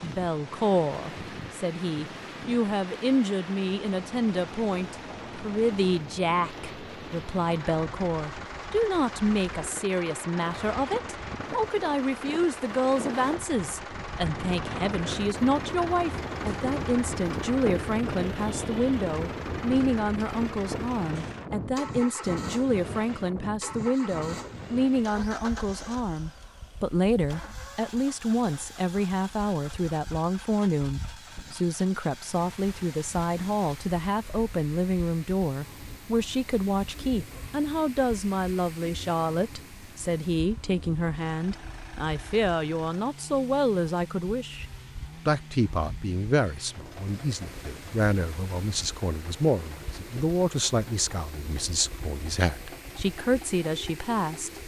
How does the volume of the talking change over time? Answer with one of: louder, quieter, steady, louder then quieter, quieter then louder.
steady.